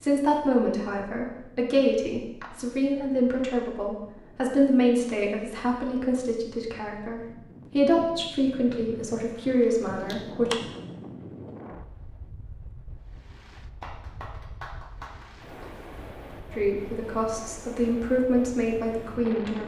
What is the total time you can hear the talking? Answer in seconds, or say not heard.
14 s.